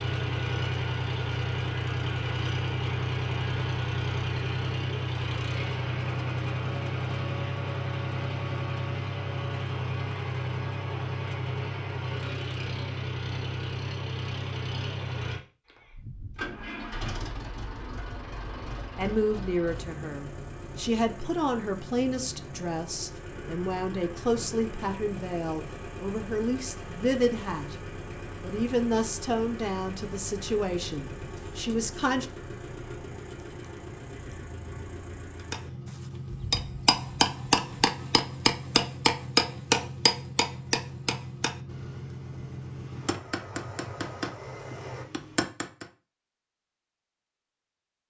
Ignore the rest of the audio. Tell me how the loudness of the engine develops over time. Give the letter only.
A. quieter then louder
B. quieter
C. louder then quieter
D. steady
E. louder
B.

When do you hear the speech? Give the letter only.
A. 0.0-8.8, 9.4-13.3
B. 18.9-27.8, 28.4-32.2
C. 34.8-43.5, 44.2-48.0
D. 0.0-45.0
B.